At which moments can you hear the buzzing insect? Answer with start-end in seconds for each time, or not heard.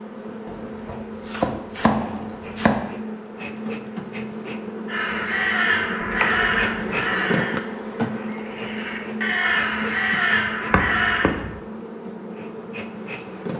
0.0-13.5.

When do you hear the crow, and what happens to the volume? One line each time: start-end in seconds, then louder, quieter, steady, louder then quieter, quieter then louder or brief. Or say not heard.
4.8-11.3 quieter then louder.